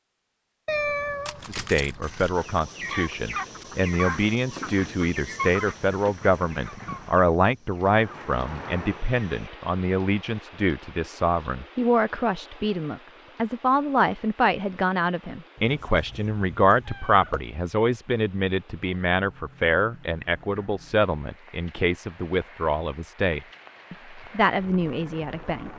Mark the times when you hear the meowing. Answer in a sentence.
The meowing can be heard from 0.7 to 2.4 s and from 15.6 to 17.4 s.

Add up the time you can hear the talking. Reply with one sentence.
You can hear the talking for 24 seconds altogether.